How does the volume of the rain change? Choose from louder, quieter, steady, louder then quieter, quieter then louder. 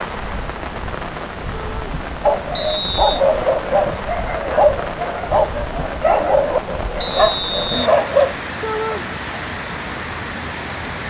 steady.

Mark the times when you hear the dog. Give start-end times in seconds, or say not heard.
2.2-8.3.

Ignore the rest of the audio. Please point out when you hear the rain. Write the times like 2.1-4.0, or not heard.
0.0-11.0.